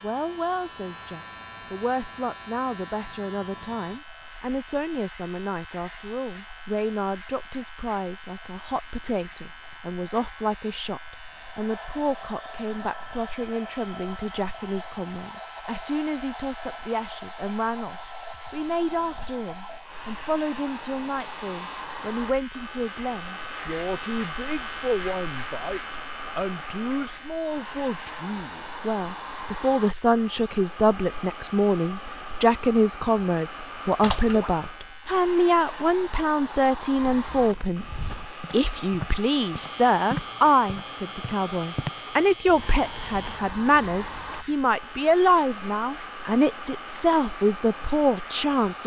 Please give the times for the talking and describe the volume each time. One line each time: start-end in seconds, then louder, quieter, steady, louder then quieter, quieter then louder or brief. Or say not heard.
0.0-48.8 louder.